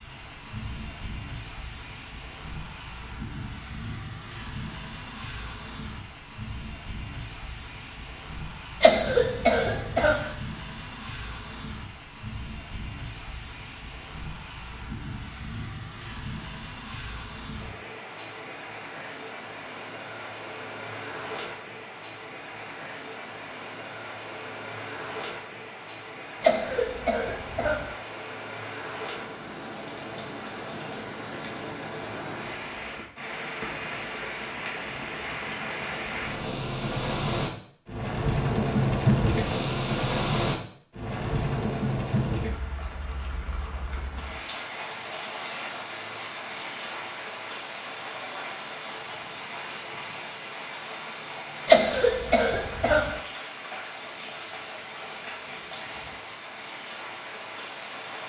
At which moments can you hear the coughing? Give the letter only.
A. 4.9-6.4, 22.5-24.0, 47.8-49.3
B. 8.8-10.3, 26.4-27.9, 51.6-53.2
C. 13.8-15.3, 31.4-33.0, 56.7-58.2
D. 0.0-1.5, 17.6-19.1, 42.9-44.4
B.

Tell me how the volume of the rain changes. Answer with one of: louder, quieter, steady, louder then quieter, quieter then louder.
louder then quieter.